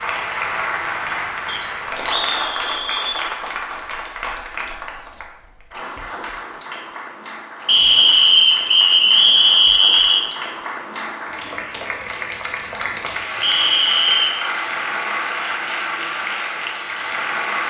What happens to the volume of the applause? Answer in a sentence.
The loudness of the applause goes down, then up.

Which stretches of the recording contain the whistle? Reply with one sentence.
The whistle can be heard from 1.4 to 3.3 s, from 7.7 to 10.2 s and from 13.4 to 14.5 s.